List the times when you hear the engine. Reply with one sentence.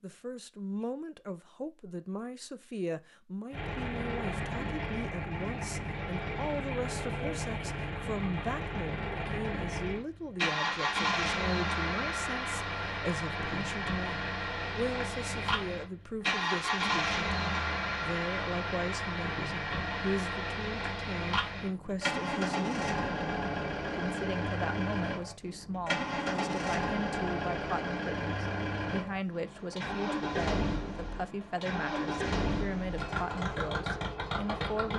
The engine can be heard from 3.5 to 34.9 s.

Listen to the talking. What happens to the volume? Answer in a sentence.
The loudness of the talking stays about the same.